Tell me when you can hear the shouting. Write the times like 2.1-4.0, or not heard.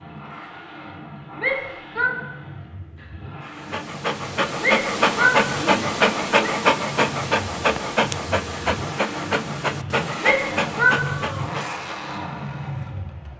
1.4-2.1, 4.6-6.5, 10.2-11.0.